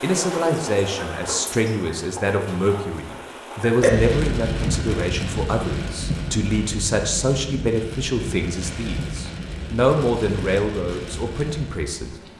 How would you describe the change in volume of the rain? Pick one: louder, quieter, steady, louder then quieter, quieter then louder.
louder then quieter.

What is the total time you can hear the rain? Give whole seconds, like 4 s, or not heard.
12 s.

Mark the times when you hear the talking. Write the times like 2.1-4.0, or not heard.
0.0-12.2.